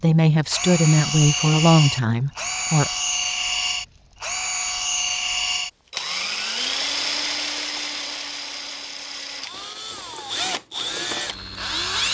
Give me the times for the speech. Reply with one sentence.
The speech can be heard from 0.0 to 2.9 s.